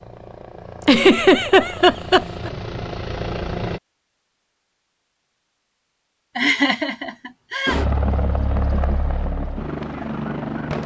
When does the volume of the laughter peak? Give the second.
1 s.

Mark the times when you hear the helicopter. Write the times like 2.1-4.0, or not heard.
0.0-3.8, 7.7-10.8.